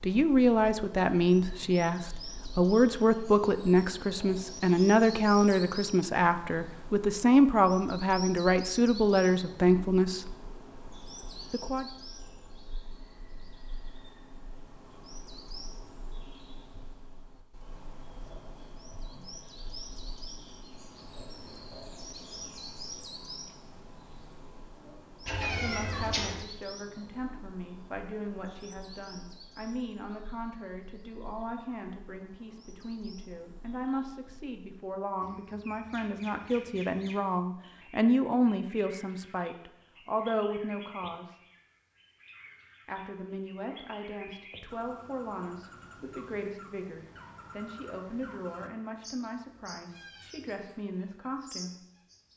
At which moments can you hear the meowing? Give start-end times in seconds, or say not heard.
25.2-26.4.